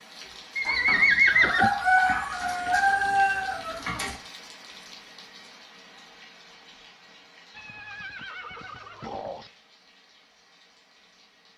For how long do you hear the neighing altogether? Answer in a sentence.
You can hear the neighing for 3 seconds altogether.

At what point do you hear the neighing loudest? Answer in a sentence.
The volume of the neighing peaks at 1 second.